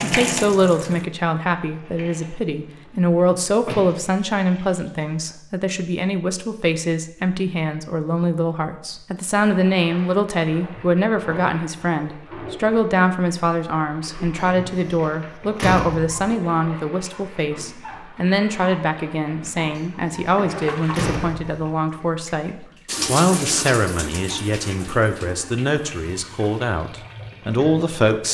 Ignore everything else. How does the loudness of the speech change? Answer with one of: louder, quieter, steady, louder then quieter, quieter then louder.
steady.